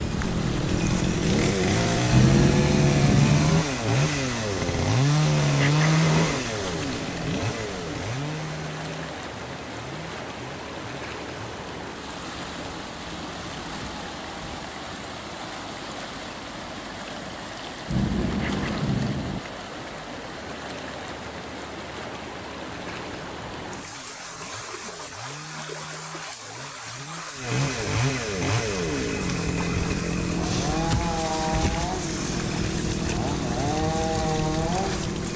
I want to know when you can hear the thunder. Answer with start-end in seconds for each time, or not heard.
2.0-3.6, 17.9-19.4.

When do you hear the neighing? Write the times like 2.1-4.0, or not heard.
5.3-6.5, 18.2-18.9.